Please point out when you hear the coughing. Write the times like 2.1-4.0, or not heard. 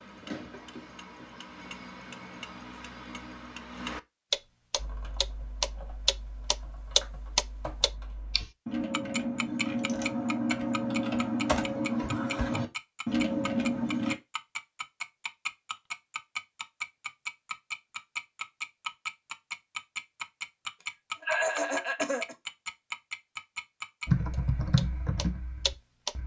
21.2-22.4.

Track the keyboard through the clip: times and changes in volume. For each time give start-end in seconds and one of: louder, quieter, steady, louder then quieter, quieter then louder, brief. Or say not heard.
4.8-14.2 louder
24.1-26.2 brief.